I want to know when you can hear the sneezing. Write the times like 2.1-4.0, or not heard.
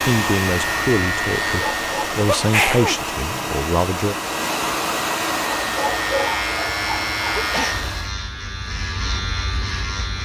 2.4-3.0, 7.3-7.8.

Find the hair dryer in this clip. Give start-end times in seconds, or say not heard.
0.0-8.1.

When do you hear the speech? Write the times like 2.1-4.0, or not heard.
0.0-4.2.